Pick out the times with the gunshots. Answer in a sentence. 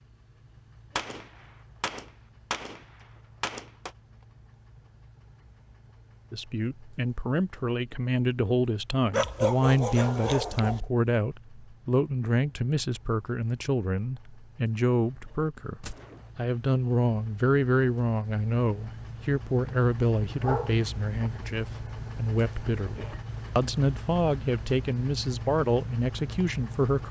You can hear the gunshots from 0.9 to 3.9 s and from 15.8 to 16.3 s.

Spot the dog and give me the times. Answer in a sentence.
The dog can be heard from 9.1 to 10.8 s and from 20.4 to 21.3 s.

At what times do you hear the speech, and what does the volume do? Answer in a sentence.
You can hear the speech from 6.3 to 27.0 s, at a steady volume.